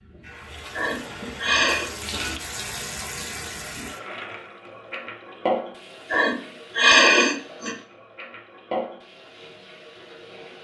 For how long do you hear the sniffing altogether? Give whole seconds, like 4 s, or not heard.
3 s.